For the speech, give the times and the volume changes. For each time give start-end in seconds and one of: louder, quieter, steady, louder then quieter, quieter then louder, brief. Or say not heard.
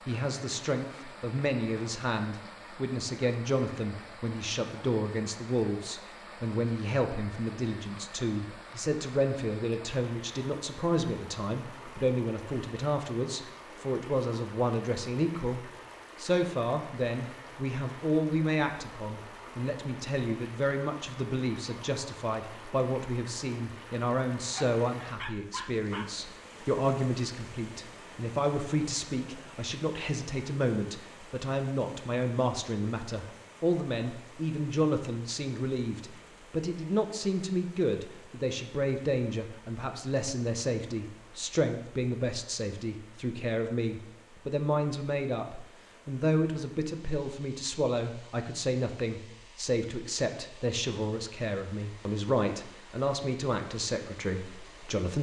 0.1-55.1 steady.